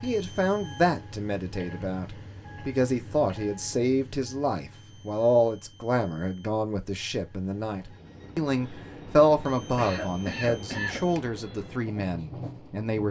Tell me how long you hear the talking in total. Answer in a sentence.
You can hear the talking for 13 seconds altogether.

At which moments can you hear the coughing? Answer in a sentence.
The coughing can be heard from 1.5 to 3.5 s and from 9.8 to 11.1 s.